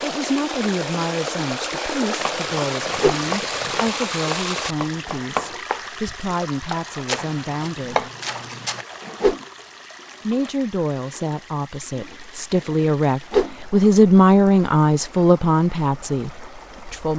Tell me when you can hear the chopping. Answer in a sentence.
The chopping can be heard from 2.2 to 8.8 s.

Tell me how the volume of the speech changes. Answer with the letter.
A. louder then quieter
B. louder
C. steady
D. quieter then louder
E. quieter
B.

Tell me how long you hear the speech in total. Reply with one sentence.
You can hear the speech for 15 seconds altogether.